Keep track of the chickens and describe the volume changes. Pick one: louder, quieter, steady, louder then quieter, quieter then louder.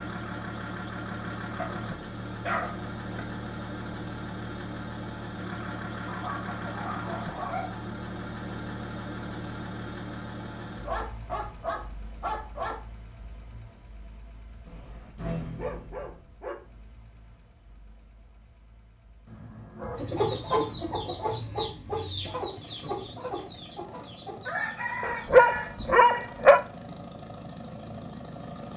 quieter then louder.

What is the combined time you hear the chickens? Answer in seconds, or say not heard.
6 s.